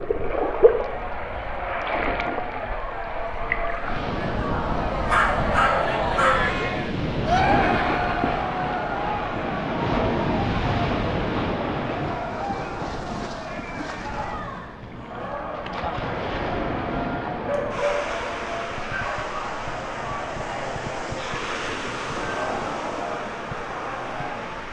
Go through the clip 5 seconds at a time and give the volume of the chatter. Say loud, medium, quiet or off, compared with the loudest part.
medium, loud, medium, medium, medium.